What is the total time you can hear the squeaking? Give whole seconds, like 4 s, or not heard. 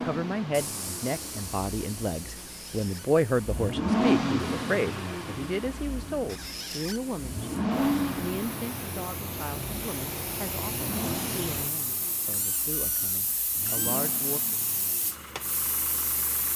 3 s.